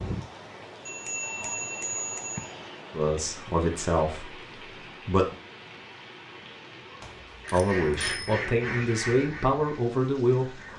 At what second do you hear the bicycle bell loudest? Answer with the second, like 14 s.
2 s.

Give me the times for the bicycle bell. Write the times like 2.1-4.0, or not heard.
0.8-2.5, 7.0-8.3.